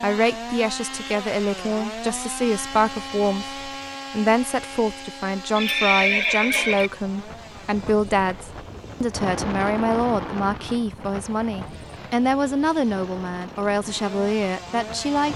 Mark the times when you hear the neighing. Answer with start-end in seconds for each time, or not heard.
5.5-6.9.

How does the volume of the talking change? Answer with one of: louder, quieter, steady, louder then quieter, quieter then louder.
steady.